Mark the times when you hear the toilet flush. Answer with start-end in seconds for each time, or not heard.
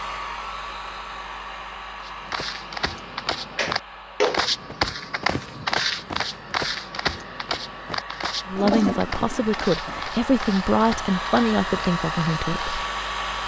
3.5-4.5, 8.5-10.0.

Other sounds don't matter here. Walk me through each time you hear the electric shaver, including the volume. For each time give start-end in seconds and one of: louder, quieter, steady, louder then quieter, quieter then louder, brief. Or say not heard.
not heard.